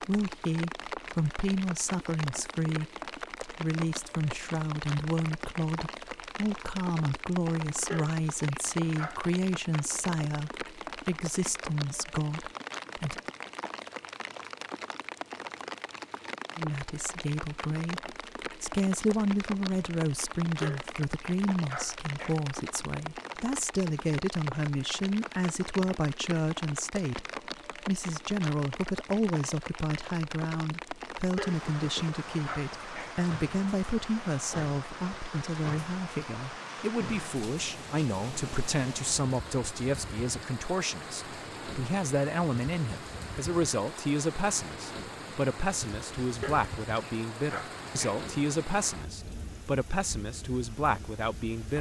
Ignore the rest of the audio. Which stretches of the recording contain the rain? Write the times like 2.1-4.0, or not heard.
0.0-51.7.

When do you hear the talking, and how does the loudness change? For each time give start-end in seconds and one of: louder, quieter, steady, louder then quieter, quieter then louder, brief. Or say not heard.
0.0-13.2 steady
16.6-51.7 steady.